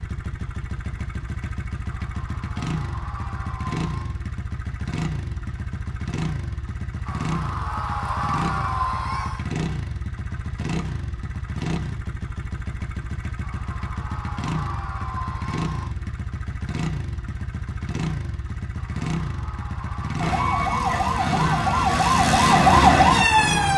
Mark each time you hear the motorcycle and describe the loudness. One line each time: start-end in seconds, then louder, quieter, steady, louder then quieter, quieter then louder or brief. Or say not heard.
0.0-23.7 steady.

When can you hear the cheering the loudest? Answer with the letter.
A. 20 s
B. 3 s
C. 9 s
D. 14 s
C.